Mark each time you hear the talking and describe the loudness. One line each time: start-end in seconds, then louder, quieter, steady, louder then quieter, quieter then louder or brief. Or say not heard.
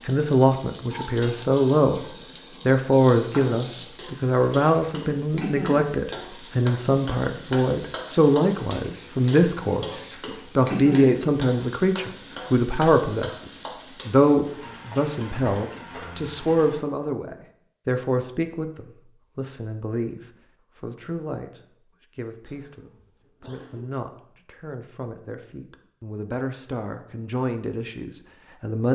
0.1-28.9 quieter.